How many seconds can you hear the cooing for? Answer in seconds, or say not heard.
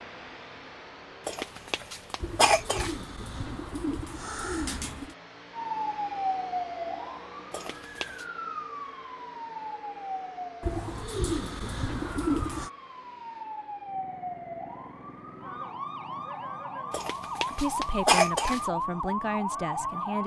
5 s.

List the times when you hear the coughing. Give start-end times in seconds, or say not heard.
1.2-3.0, 7.5-8.2, 16.9-18.6.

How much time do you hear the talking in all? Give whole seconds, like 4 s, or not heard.
3 s.